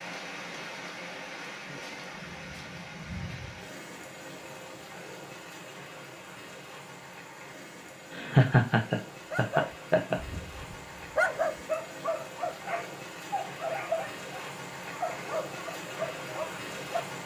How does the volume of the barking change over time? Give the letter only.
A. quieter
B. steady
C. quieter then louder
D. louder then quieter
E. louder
D.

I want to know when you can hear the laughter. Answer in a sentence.
You can hear the laughter from 8.1 to 10.2 s.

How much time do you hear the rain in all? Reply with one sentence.
The rain can be heard for 17 seconds in total.